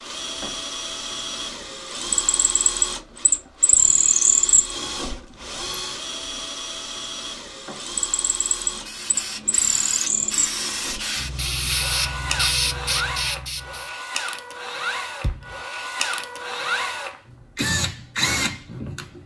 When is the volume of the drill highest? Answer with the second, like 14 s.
4 s.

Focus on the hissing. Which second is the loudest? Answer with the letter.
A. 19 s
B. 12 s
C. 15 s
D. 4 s
B.